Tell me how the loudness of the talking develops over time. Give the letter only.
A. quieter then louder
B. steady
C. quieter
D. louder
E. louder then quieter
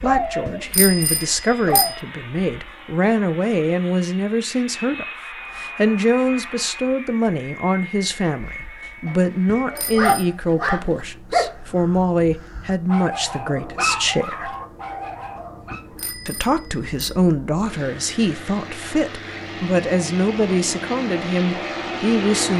B.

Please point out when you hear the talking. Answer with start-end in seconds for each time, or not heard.
0.0-14.6, 16.2-22.5.